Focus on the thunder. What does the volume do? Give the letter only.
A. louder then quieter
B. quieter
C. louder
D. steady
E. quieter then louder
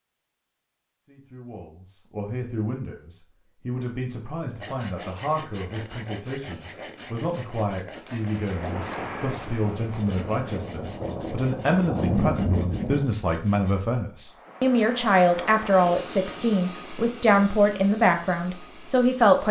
C.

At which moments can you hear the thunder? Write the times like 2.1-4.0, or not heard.
8.7-13.1.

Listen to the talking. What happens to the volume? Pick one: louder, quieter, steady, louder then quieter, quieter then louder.
louder.